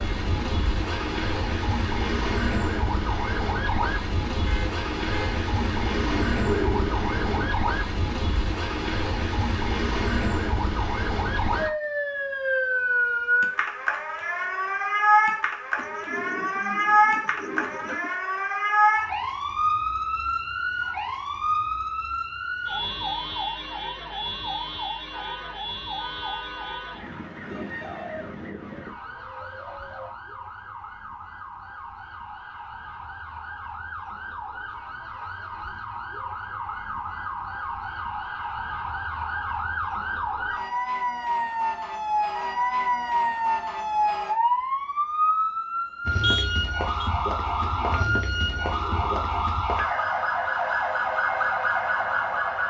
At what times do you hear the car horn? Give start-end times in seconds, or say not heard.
4.5-5.5, 25.1-27.1, 46.2-47.1.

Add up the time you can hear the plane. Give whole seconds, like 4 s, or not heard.
not heard.